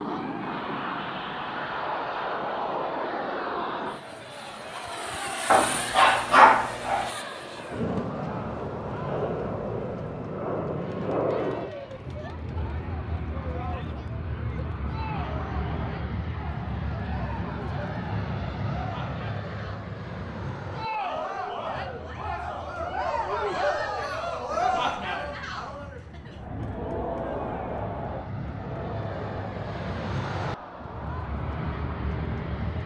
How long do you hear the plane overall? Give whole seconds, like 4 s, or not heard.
33 s.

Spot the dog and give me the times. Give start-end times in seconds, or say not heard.
5.5-7.1.